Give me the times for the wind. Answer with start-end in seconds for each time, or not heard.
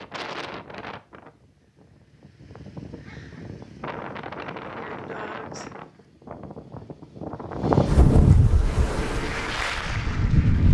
0.0-10.6.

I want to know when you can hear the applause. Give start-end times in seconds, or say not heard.
8.6-10.6.